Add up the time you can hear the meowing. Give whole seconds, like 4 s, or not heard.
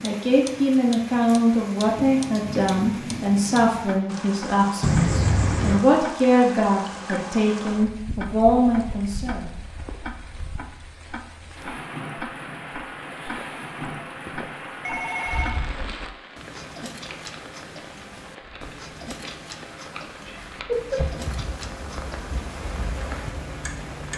2 s.